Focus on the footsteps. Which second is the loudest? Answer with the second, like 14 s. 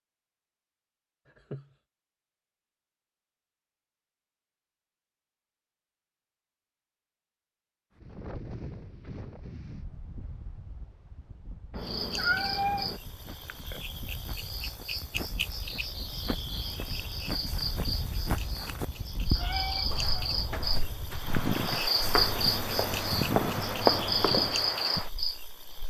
24 s.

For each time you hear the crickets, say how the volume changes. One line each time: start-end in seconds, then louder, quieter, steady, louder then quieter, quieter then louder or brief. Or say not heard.
11.8-25.8 louder.